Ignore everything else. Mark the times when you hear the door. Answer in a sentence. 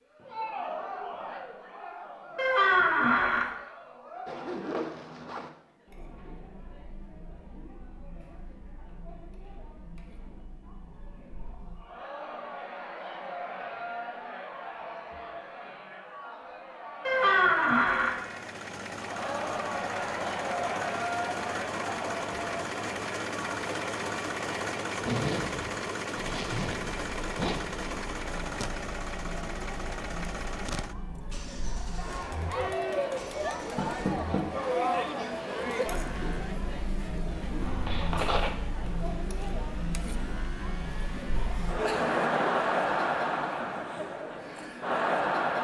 The door can be heard from 2.4 to 3.5 s, from 17.1 to 18.1 s and from 33.8 to 34.4 s.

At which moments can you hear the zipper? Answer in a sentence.
You can hear the zipper from 4.2 to 5.5 s, from 25.0 to 27.6 s and from 37.6 to 38.5 s.